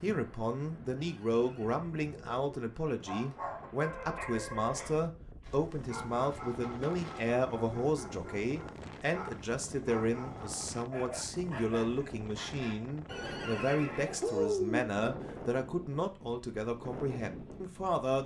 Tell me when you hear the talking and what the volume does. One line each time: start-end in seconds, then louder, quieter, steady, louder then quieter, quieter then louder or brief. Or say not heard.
0.0-18.2 steady.